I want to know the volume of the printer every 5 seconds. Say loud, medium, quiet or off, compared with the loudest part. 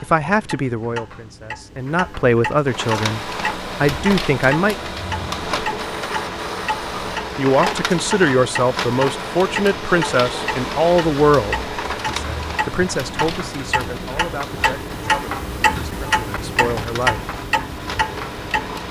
loud, loud, loud, medium.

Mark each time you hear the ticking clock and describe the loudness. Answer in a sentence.
The ticking clock can be heard from 0.0 to 18.8 s, getting louder.